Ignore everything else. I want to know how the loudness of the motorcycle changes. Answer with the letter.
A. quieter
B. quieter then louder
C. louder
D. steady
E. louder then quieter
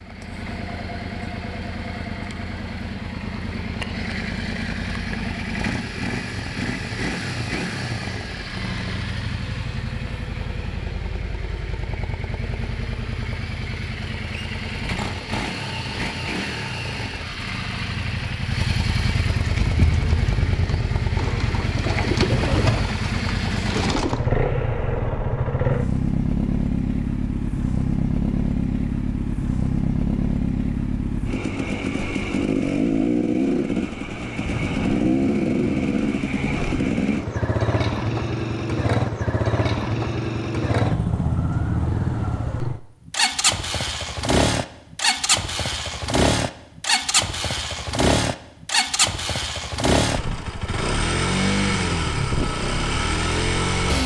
C.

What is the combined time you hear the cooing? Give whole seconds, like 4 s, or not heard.
5 s.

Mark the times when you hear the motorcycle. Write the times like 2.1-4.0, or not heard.
0.0-54.0.